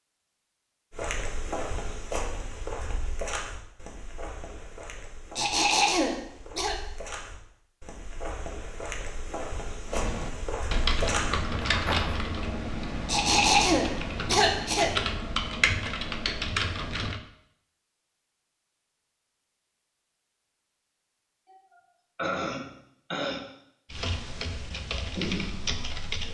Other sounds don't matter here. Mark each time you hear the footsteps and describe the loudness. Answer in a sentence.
You can hear the footsteps from 0.9 to 12.2 s, getting quieter then louder.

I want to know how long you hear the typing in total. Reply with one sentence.
The typing can be heard for 10 seconds in total.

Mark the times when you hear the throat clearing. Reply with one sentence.
The throat clearing can be heard from 5.3 to 6.8 s, from 13.1 to 14.9 s and from 21.4 to 23.5 s.